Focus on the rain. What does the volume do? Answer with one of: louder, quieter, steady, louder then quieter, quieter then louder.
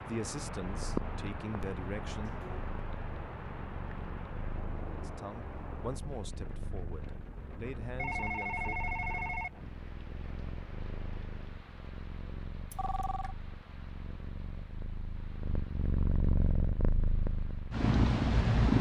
quieter.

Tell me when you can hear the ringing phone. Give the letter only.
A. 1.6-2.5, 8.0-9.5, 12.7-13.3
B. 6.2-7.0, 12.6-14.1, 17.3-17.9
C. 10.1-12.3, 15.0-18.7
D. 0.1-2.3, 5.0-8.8
A.